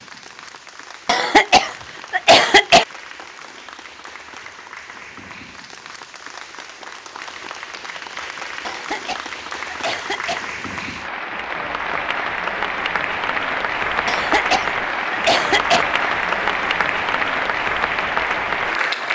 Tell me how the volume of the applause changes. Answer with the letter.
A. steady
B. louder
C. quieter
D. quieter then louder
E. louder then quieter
B.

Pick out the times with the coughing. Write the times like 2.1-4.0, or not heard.
1.1-2.9, 8.7-10.4, 14.1-15.8.